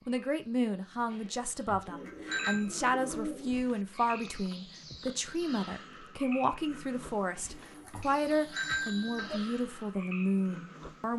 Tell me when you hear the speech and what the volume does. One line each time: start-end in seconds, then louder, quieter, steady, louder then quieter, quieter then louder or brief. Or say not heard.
0.1-11.1 steady.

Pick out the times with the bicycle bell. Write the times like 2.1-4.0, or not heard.
1.1-2.6, 7.3-9.3.